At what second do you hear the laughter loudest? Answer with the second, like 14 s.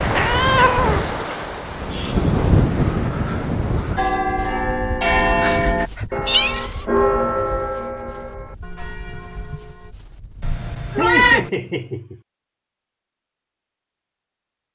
11 s.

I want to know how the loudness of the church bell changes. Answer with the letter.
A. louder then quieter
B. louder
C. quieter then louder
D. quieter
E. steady
D.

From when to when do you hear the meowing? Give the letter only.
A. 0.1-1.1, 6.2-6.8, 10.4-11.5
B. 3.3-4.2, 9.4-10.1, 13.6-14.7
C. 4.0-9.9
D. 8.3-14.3
A.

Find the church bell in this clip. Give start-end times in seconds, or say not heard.
4.0-9.9.